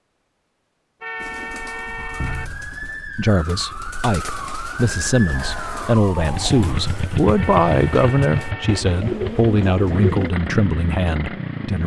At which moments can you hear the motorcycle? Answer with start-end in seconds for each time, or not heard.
6.2-11.8.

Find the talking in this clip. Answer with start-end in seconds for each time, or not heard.
3.1-11.8.